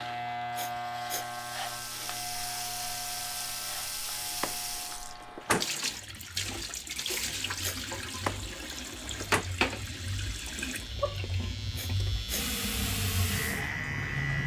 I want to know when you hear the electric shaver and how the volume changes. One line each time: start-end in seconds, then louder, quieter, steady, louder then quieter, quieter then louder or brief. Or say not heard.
0.0-14.4 quieter then louder.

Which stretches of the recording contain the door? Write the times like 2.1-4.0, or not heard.
4.4-5.7, 8.2-9.4.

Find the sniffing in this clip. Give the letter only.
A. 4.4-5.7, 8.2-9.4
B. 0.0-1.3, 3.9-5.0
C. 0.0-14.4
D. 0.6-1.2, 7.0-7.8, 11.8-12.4
D.